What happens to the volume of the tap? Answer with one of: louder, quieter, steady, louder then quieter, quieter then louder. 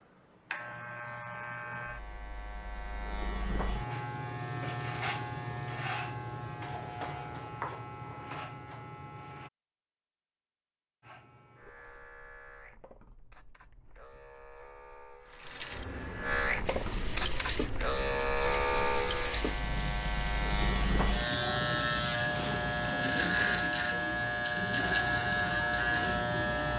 steady.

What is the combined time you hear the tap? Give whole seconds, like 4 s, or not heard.
8 s.